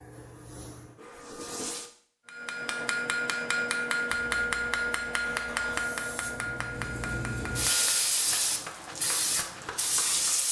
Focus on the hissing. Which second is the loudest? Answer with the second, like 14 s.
8 s.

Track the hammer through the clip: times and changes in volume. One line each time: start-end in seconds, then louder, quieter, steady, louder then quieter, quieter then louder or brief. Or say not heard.
2.2-10.4 quieter.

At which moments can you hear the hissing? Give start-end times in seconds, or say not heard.
0.0-1.9, 4.2-10.4.